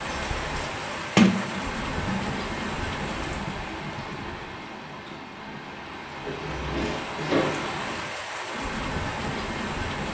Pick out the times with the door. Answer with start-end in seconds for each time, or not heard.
1.1-2.3, 6.2-7.7.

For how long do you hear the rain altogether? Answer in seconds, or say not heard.
10 s.